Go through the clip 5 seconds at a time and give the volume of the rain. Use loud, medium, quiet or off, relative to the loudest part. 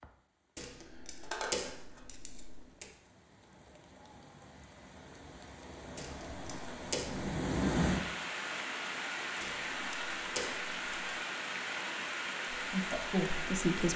quiet, loud, loud.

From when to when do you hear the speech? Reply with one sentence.
The speech can be heard from 12.6 to 13.9 s.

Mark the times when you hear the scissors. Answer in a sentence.
You can hear the scissors from 1.2 to 2.0 s.